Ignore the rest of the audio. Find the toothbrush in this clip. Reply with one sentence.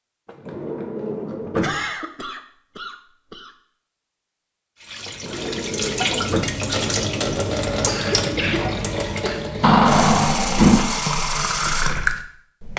The toothbrush can't be heard in this clip.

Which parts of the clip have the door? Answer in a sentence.
You can hear the door from 0.2 to 1.8 s, from 5.0 to 6.6 s and from 9.6 to 10.9 s.